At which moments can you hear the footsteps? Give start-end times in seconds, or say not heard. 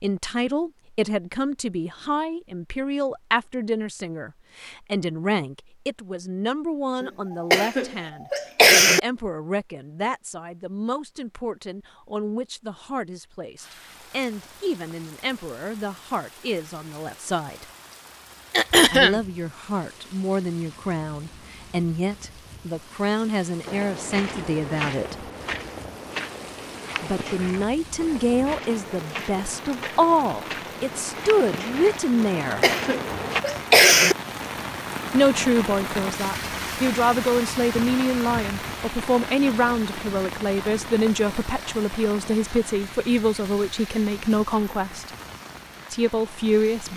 23.6-33.5.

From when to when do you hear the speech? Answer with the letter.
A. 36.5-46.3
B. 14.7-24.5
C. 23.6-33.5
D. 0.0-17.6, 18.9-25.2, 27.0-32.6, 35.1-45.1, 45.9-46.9
D.